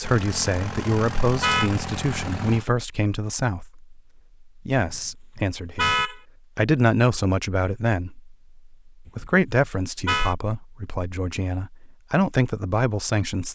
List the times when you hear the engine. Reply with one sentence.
The engine can be heard from 0.0 to 2.6 s.